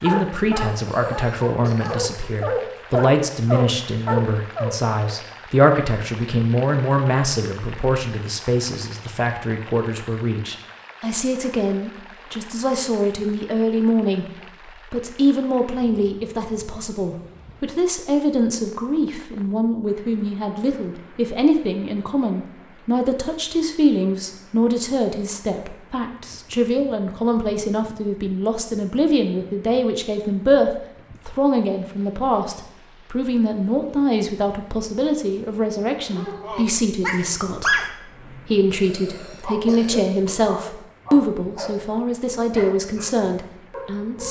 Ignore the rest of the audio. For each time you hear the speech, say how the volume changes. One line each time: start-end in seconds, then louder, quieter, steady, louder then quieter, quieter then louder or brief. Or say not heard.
0.0-44.2 steady.